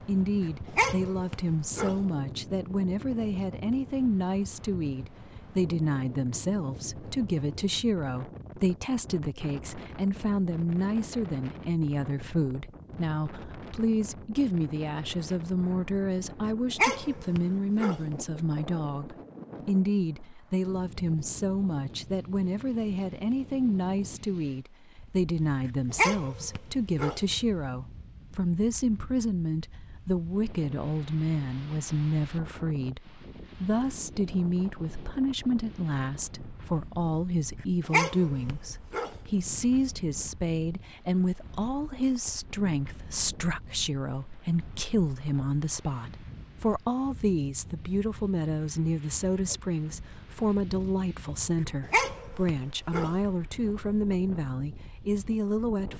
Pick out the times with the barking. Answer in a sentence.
You can hear the barking from 0.4 to 1.9 s, from 16.4 to 18.1 s, from 25.6 to 27.4 s, from 37.5 to 39.3 s and from 51.8 to 53.1 s.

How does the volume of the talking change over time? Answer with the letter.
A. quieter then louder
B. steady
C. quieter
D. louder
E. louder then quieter
B.